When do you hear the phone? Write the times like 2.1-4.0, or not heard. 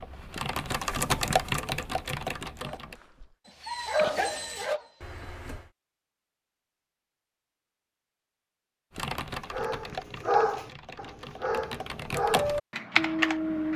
5.0-5.7.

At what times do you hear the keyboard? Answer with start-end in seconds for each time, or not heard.
0.0-3.0, 8.9-13.7.